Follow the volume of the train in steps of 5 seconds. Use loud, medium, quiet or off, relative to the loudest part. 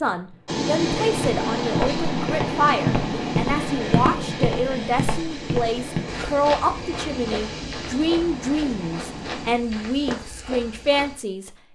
loud, medium, off.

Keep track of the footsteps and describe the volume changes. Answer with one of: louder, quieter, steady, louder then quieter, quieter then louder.
quieter.